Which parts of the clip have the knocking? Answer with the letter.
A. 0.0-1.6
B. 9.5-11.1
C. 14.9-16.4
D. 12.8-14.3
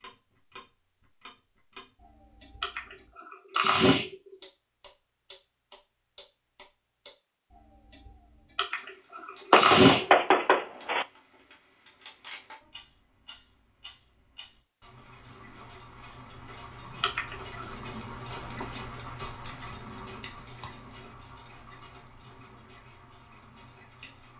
B.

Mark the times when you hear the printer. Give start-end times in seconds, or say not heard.
not heard.